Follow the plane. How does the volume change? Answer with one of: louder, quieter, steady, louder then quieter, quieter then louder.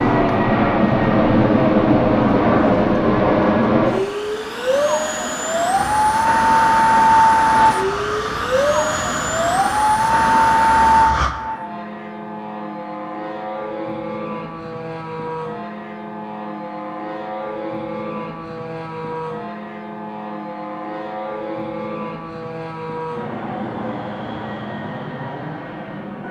quieter.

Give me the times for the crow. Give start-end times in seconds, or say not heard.
5.7-11.3.